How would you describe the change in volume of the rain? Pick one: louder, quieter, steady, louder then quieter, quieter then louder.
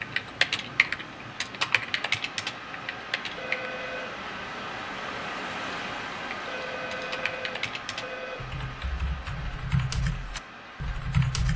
louder then quieter.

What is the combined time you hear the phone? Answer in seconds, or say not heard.
3 s.